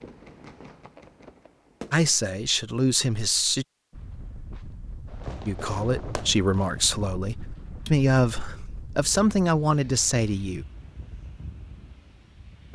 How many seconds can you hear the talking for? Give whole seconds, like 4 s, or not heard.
7 s.